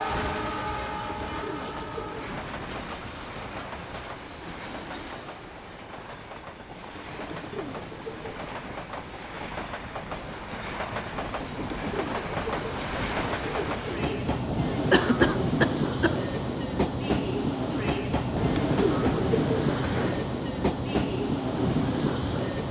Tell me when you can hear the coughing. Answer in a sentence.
The coughing can be heard from 14.9 to 16.2 s.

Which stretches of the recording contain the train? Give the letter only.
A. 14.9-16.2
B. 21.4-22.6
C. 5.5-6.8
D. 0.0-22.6
D.